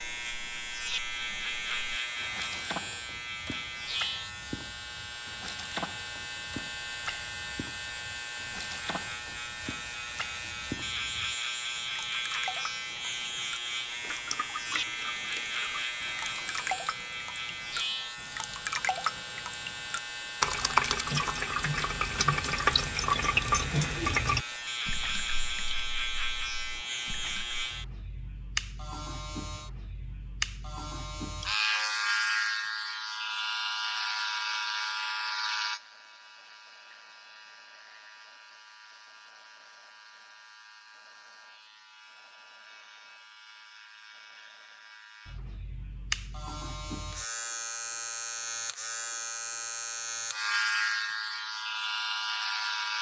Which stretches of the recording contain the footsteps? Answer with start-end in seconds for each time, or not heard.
not heard.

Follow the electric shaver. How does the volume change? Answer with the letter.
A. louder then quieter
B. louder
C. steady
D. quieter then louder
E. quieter
C.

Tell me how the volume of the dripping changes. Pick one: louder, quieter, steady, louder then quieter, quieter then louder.
louder.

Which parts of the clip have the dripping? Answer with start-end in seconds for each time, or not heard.
0.0-27.6.